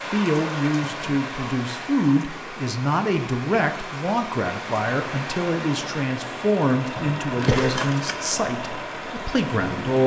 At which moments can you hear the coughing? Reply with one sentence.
You can hear the coughing from 7.0 to 7.8 s.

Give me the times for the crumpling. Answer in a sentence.
You can hear the crumpling from 7.4 to 8.3 s.